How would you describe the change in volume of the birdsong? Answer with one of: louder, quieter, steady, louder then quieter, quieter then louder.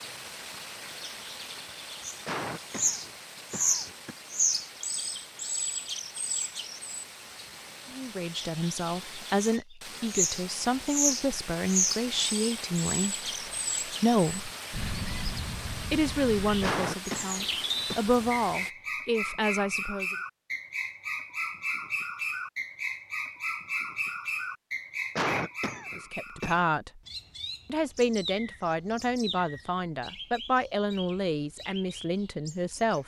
quieter.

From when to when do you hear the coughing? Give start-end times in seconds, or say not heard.
2.2-4.2, 16.6-18.0, 25.1-26.6.